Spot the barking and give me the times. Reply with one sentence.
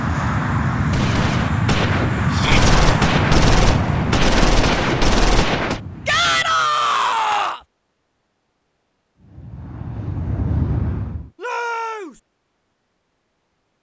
The barking can't be heard in this clip.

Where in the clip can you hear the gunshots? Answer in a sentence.
You can hear the gunshots from 0.9 to 5.8 s.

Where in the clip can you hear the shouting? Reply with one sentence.
You can hear the shouting from 2.3 to 2.7 s, from 6.0 to 7.6 s and from 11.4 to 12.2 s.